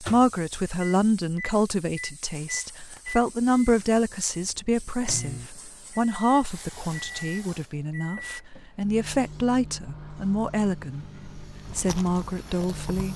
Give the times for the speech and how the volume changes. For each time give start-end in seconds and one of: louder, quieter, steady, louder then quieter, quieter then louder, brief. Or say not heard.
0.0-11.1 quieter then louder
11.8-13.1 brief.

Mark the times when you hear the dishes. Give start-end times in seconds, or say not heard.
not heard.